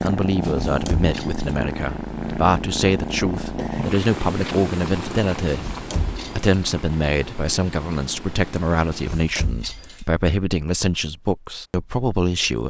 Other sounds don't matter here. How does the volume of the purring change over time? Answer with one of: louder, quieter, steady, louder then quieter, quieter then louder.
quieter.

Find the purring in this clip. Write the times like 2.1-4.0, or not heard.
0.0-9.2.